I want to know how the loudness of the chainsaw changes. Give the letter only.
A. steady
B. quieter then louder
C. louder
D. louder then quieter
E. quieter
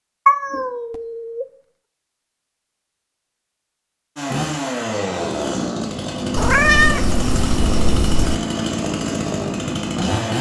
A.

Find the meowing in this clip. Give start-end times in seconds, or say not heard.
0.2-1.4, 6.3-8.3.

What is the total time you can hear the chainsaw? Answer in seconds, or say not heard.
6 s.